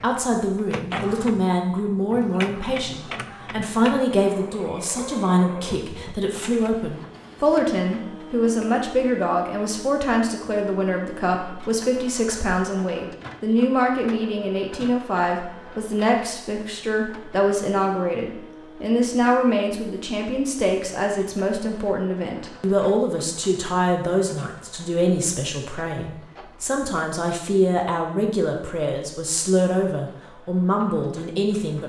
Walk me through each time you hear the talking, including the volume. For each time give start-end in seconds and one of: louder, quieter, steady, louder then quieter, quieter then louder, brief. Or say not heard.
0.0-31.8 steady.